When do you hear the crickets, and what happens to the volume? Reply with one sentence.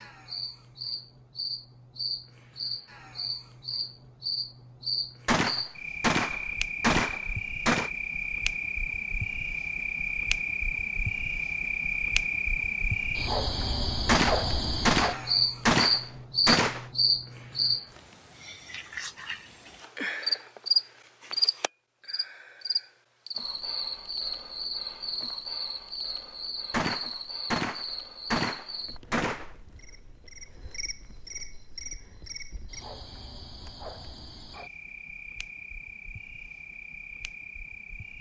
The crickets can be heard from 0.0 to 38.1 s, getting louder then quieter.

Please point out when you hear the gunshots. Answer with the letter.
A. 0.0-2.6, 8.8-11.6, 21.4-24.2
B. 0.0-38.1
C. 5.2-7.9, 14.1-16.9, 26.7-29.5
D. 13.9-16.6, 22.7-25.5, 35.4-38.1
C.